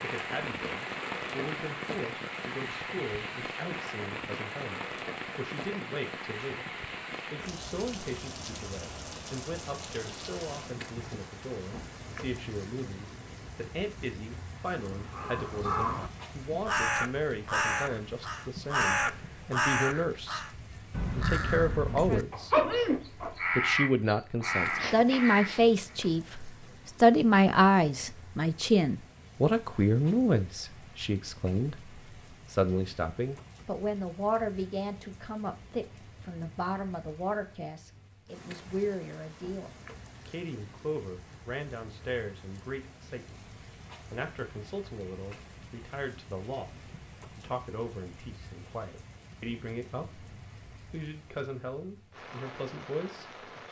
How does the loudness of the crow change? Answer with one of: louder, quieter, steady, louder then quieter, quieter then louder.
steady.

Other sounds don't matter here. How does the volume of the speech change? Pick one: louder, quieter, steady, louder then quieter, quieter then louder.
louder then quieter.